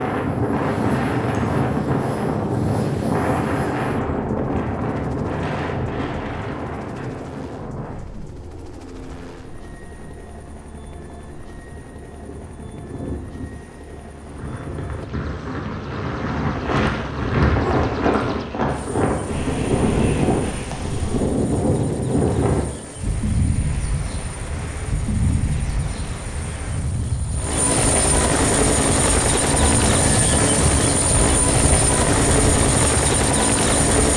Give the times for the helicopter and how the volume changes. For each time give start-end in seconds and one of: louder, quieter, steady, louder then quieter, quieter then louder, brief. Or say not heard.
0.0-34.1 louder.